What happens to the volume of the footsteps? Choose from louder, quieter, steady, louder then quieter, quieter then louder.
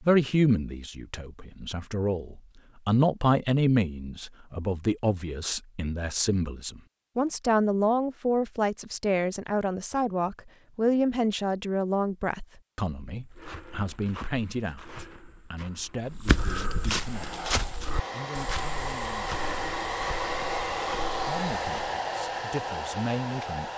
louder then quieter.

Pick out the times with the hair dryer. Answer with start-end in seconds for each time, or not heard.
16.9-23.7.